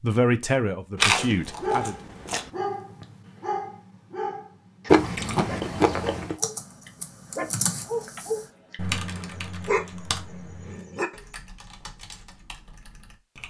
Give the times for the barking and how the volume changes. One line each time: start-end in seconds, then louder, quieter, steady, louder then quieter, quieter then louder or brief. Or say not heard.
1.6-11.2 quieter then louder.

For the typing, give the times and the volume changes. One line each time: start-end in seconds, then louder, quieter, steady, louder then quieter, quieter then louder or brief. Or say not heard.
6.3-13.4 quieter.